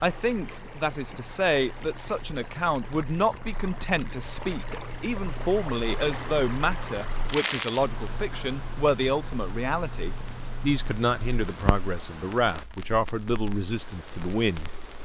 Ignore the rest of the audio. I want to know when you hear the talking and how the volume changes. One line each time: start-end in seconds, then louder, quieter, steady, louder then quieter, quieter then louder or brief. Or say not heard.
0.0-15.0 steady.